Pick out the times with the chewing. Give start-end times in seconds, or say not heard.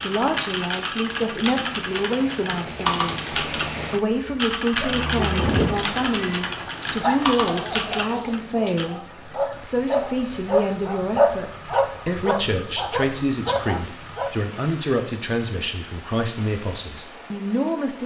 not heard.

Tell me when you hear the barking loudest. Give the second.
11 s.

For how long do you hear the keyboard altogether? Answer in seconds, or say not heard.
9 s.